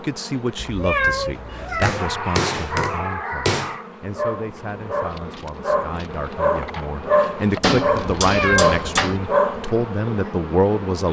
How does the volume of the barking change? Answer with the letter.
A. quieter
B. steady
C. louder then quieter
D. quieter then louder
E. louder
E.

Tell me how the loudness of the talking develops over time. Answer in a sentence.
The volume of the talking goes down, then up.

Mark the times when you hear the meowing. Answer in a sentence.
The meowing can be heard from 0.6 to 1.9 s and from 8.2 to 8.8 s.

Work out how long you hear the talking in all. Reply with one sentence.
The talking can be heard for 11 seconds in total.